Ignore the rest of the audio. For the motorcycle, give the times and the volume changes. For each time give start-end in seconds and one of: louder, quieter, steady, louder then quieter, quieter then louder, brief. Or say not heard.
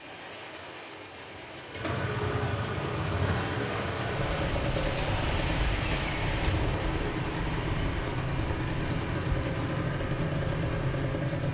1.7-11.4 steady.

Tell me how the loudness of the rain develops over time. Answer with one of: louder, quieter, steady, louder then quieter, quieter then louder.
louder then quieter.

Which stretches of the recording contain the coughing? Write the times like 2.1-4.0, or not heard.
not heard.